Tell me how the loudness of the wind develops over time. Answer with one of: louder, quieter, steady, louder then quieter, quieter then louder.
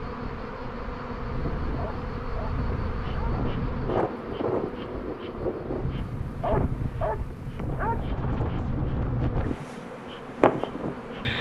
louder.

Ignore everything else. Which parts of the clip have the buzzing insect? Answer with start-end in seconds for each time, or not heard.
0.0-11.3.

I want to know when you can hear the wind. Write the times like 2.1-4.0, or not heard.
0.0-11.3.